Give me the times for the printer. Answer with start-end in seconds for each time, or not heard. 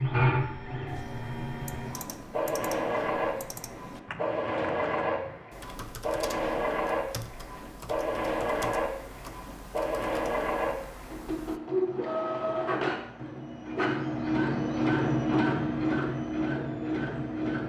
0.0-17.6.